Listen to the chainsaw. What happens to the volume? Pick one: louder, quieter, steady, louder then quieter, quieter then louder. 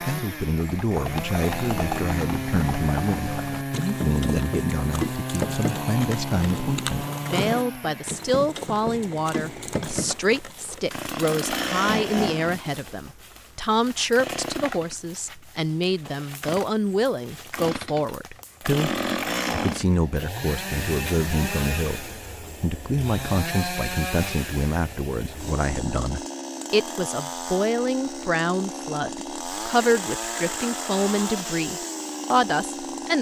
steady.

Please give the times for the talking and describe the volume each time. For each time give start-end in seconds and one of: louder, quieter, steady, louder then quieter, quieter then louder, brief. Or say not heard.
0.0-33.1 steady.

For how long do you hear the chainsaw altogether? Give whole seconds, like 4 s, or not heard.
33 s.